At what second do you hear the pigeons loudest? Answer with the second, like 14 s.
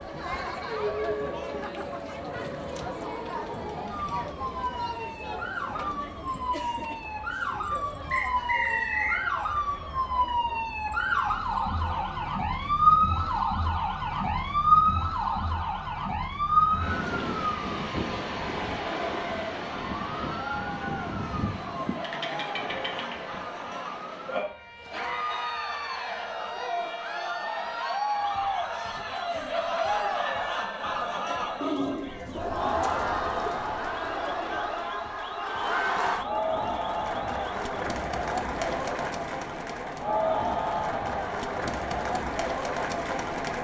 32 s.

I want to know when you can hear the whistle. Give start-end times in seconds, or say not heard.
8.1-9.2.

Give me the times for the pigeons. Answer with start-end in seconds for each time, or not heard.
31.6-33.5.